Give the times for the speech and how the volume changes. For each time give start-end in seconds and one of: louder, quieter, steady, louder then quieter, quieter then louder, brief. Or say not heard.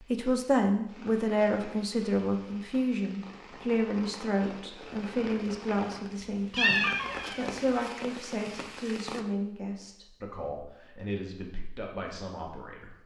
0.0-12.9 quieter.